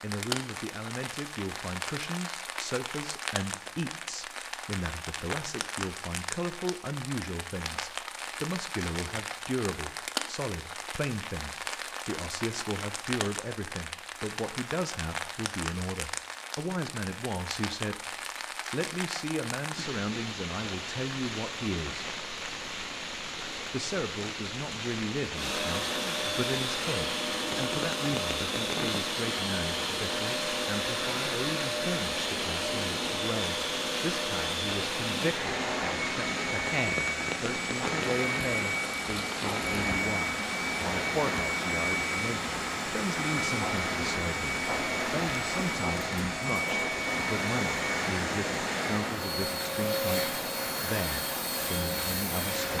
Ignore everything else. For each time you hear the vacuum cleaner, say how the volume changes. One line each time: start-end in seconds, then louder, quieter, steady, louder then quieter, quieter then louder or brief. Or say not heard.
25.3-52.7 steady.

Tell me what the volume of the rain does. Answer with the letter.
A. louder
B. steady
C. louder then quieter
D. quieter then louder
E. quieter
B.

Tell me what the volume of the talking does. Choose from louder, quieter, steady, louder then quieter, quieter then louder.
steady.